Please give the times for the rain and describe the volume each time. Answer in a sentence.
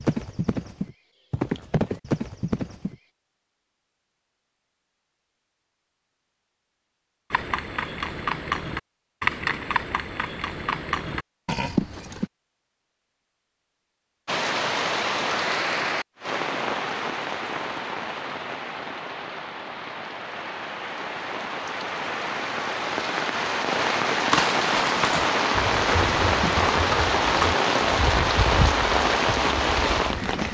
The rain can be heard from 14.2 to 30.4 s, getting quieter then louder.